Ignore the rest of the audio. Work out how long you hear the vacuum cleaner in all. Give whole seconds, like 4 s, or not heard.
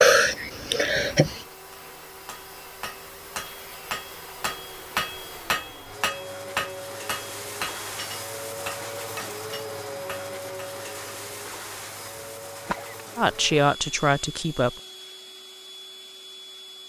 17 s.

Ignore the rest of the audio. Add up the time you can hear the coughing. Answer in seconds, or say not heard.
2 s.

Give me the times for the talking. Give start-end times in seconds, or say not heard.
13.2-14.7.